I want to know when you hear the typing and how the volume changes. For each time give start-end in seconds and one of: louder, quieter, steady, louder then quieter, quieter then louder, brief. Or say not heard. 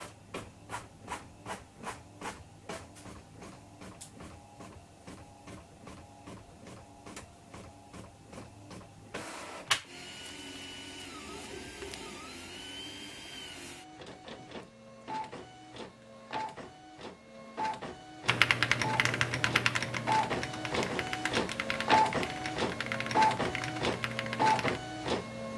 18.2-24.8 quieter.